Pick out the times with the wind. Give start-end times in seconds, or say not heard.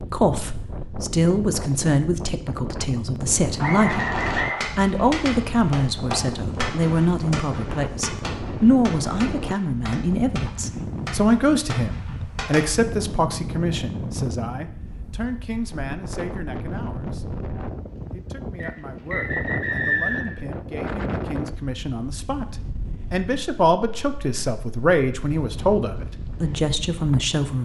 0.0-27.6.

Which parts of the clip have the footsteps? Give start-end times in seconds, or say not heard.
not heard.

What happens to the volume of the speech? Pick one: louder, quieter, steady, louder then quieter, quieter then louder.
quieter then louder.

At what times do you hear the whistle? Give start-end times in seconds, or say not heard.
3.6-4.7, 18.6-20.4.